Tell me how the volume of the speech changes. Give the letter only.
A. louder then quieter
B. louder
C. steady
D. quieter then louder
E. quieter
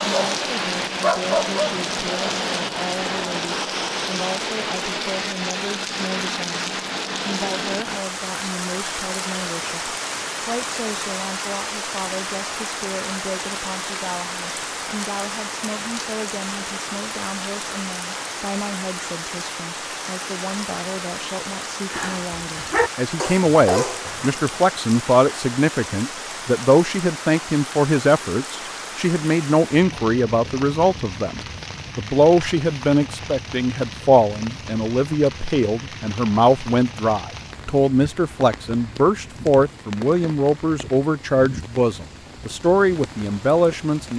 B.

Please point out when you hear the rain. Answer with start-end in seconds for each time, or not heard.
0.0-44.1.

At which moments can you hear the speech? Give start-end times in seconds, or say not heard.
0.0-44.1.